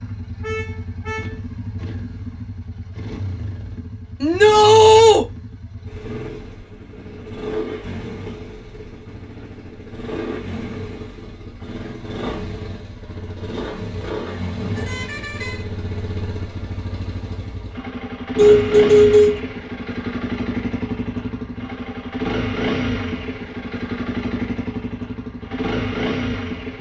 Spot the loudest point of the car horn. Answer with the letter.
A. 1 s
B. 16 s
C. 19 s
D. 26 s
C.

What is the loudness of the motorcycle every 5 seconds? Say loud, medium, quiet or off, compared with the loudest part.
medium, medium, medium, loud, loud, loud.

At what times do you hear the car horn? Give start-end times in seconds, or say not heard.
0.4-1.4, 14.6-15.7, 18.4-19.4.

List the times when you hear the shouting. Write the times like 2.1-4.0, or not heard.
4.2-5.2.